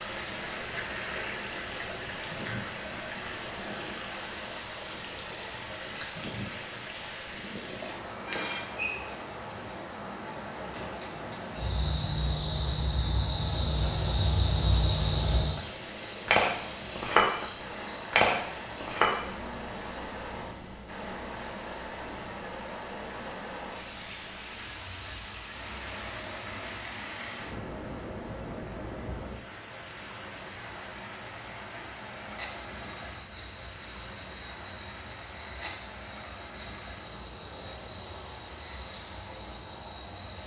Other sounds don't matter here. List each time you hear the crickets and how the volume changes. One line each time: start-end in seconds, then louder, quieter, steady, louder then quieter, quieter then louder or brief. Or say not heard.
0.0-40.4 louder then quieter.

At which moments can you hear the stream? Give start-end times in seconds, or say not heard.
0.0-40.4.